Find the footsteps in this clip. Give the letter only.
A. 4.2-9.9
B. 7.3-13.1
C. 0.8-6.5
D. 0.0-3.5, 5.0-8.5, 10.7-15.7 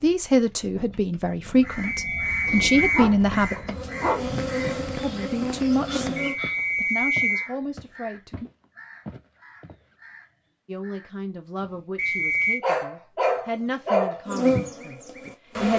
A.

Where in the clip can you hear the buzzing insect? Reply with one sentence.
You can hear the buzzing insect from 0.0 to 6.3 s and from 14.2 to 15.7 s.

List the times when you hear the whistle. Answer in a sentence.
The whistle can be heard from 1.8 to 3.0 s, from 6.2 to 7.5 s and from 11.9 to 12.6 s.